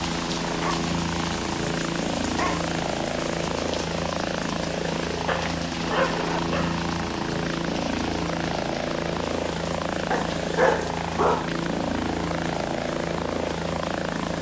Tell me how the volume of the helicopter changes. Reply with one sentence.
The volume of the helicopter stays about the same.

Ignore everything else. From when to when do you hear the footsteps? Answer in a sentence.
The footsteps can't be heard in this clip.